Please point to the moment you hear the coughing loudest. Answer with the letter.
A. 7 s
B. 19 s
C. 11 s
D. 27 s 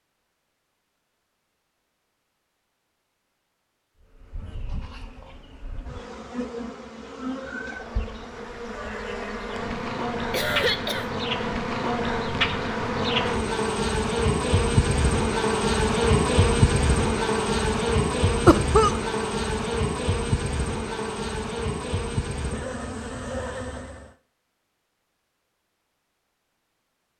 B.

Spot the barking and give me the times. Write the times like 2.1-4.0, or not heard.
not heard.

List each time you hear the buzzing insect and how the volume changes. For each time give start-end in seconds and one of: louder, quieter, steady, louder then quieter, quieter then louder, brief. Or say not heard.
4.0-24.1 louder then quieter.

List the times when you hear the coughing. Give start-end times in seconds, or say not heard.
10.3-11.1, 18.4-19.0.